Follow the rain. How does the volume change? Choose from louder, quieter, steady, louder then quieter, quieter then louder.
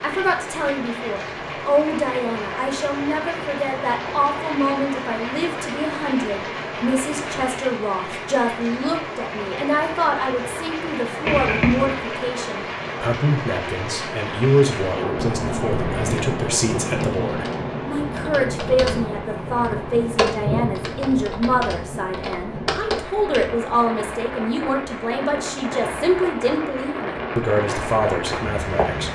steady.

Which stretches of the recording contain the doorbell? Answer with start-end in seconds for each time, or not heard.
11.2-11.9.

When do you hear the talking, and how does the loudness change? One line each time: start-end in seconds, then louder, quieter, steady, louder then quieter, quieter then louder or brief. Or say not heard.
0.0-29.0 steady.